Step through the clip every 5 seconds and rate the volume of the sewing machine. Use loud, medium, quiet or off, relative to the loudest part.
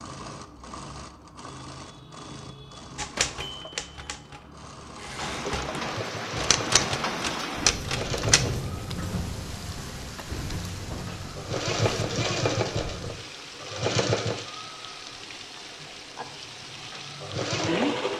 quiet, medium, loud, loud.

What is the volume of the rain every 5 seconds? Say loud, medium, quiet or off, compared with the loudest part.
off, loud, medium, medium.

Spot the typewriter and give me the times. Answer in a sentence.
You can hear the typewriter from 3.0 to 8.4 s.